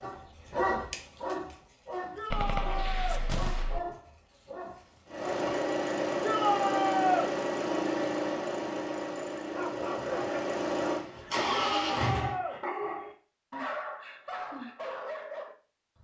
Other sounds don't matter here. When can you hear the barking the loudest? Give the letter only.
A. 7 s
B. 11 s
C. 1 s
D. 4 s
C.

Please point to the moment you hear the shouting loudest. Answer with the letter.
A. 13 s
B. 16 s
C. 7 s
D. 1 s
C.